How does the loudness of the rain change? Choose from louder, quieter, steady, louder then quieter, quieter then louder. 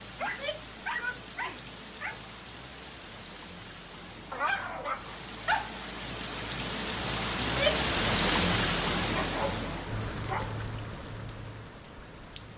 louder then quieter.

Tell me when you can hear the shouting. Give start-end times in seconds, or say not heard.
0.2-1.6, 7.4-7.9.